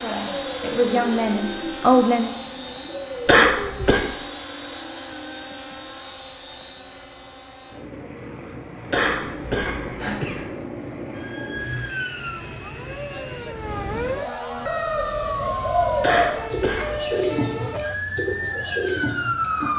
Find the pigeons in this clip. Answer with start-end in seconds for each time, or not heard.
14.6-19.7.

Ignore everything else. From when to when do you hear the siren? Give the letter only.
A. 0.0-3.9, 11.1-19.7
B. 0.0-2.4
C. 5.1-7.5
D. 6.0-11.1
A.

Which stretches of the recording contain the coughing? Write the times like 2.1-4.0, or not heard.
3.2-4.0, 8.9-10.4, 16.0-17.2.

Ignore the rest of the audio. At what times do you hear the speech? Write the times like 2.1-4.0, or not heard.
0.0-2.4.